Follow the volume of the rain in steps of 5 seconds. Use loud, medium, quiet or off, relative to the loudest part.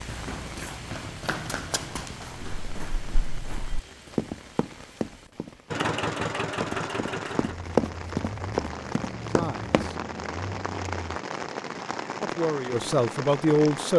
medium, medium, loud.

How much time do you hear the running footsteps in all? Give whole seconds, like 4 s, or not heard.
10 s.